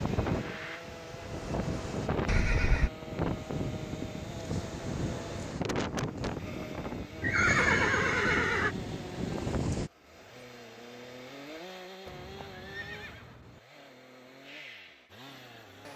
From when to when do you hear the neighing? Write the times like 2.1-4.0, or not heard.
2.2-2.9, 7.2-8.8, 12.1-13.6.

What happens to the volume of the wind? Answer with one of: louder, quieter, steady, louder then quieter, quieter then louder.
steady.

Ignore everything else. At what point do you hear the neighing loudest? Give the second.
8 s.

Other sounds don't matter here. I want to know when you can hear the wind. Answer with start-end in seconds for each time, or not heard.
0.0-9.9.